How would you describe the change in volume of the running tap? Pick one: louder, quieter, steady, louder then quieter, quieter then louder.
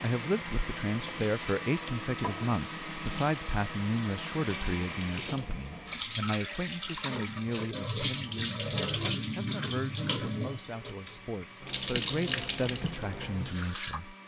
louder.